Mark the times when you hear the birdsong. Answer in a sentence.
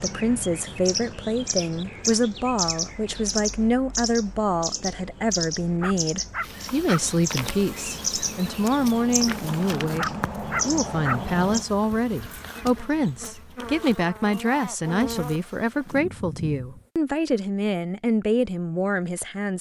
You can hear the birdsong from 0.0 to 11.7 s.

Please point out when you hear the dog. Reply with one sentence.
You can hear the dog from 5.8 to 7.0 s and from 9.9 to 11.2 s.